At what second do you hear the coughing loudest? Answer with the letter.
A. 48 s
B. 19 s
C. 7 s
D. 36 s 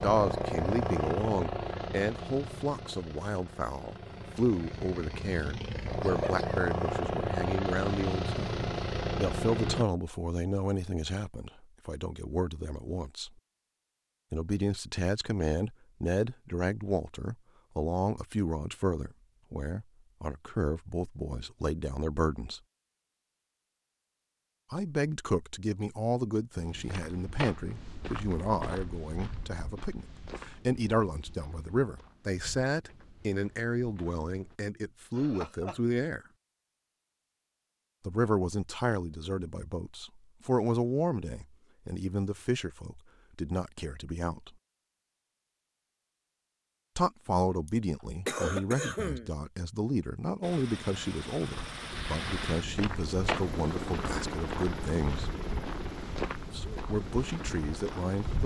A.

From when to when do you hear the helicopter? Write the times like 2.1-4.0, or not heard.
0.0-9.8, 50.4-58.4.